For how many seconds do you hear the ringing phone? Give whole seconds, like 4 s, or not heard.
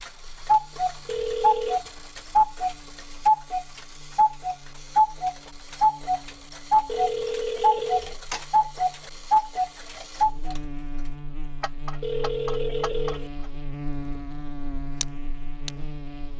3 s.